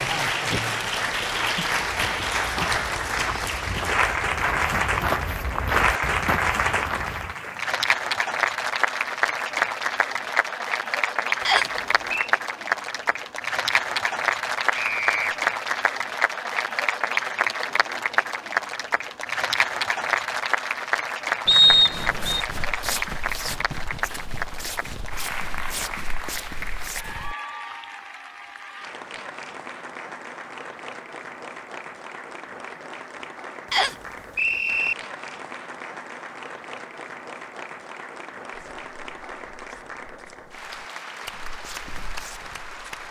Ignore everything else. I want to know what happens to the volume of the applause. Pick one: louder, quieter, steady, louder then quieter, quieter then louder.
quieter.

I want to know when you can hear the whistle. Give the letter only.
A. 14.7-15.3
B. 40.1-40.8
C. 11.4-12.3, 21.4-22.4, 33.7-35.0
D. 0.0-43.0
C.